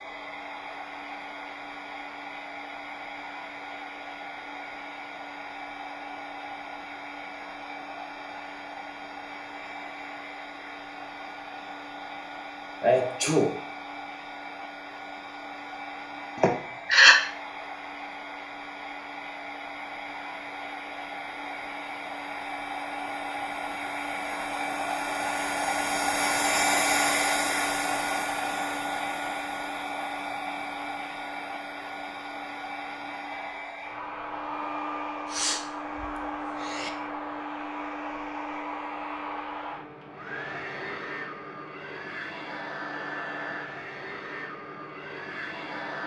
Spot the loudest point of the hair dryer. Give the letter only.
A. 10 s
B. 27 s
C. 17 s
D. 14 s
B.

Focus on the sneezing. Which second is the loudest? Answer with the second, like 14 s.
17 s.